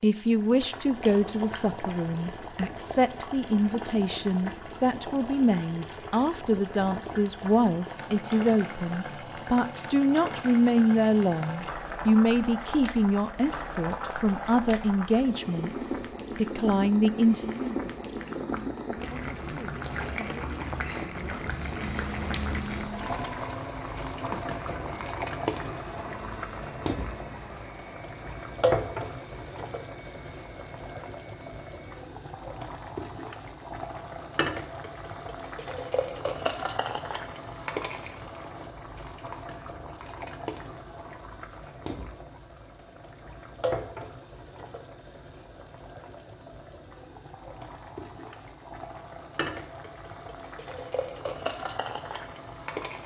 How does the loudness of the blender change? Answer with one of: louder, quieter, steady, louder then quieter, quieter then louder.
quieter.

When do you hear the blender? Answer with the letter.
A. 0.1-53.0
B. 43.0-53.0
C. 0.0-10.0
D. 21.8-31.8
D.